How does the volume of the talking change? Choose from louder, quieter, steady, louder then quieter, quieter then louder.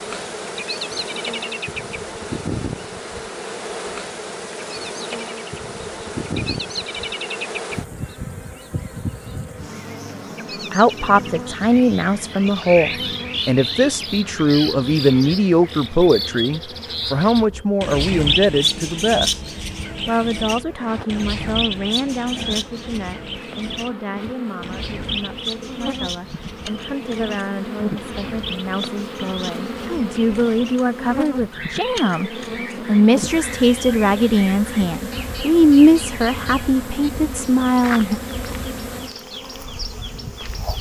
quieter then louder.